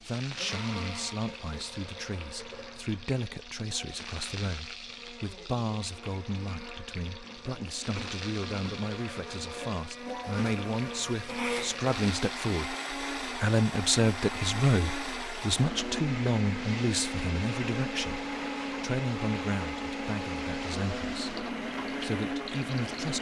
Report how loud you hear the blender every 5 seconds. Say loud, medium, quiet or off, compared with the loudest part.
medium, medium, loud, loud, loud.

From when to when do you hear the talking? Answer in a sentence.
You can hear the talking from 0.0 to 23.1 s.